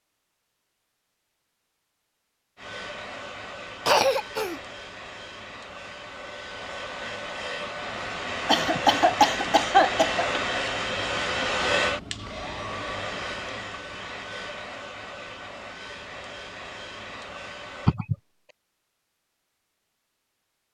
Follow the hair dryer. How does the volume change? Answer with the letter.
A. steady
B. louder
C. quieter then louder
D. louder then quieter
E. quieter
D.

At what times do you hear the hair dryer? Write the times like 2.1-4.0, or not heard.
2.5-17.9.